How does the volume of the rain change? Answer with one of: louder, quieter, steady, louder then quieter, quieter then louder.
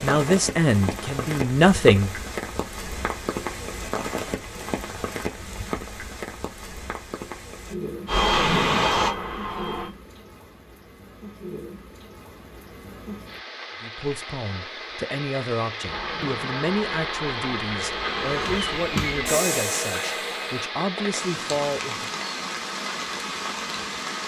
quieter then louder.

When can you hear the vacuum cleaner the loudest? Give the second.
9 s.